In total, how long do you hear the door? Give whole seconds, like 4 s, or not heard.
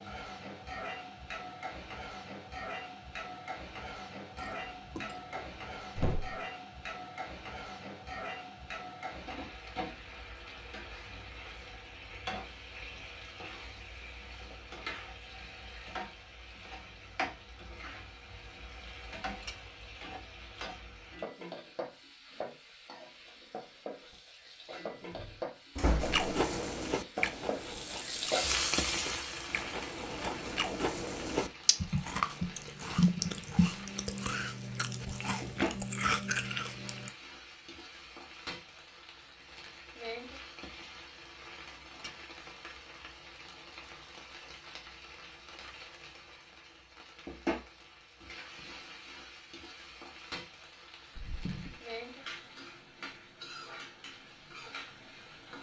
3 s.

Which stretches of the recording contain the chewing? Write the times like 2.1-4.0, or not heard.
26.0-37.1.